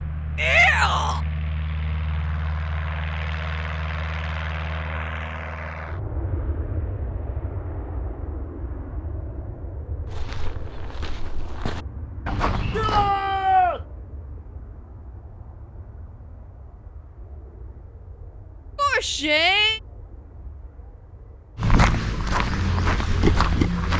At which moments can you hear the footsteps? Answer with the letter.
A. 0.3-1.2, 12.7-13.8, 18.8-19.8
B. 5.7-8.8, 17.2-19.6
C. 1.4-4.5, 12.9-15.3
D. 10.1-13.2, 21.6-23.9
D.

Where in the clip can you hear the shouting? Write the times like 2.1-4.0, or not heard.
0.3-1.2, 12.7-13.8, 18.8-19.8.